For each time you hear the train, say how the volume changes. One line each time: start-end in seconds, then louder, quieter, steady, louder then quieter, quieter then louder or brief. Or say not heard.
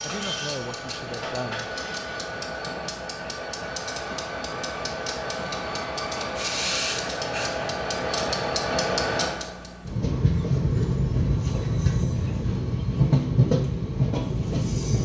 0.0-14.9 louder.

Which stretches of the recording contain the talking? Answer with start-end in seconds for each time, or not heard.
0.0-1.7.